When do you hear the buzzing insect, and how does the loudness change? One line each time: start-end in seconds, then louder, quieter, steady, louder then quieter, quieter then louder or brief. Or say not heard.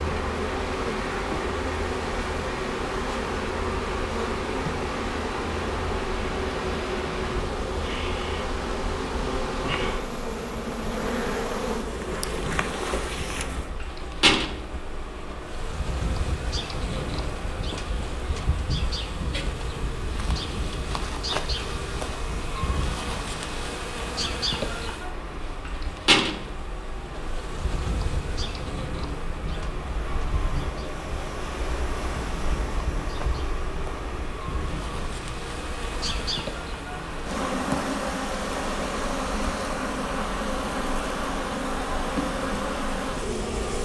0.0-43.8 quieter then louder.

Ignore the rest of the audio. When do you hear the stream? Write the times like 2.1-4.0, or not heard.
0.0-43.8.